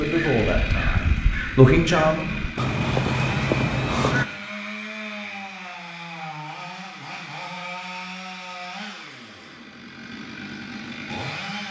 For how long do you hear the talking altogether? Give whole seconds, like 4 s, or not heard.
2 s.